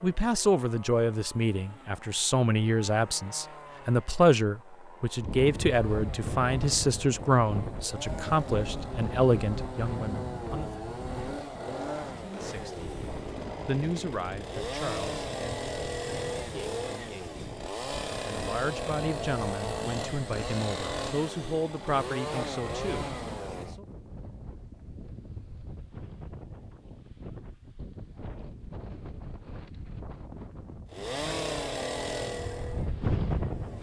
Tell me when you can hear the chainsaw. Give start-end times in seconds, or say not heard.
0.0-23.8, 30.9-33.7.